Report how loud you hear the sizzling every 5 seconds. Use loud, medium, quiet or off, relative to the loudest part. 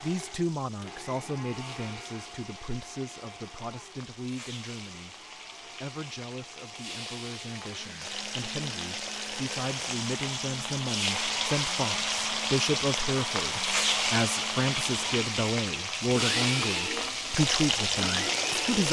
quiet, medium, loud, loud.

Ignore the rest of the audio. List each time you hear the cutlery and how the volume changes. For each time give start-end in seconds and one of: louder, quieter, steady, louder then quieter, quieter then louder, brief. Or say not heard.
not heard.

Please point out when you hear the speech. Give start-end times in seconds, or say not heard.
0.0-18.8.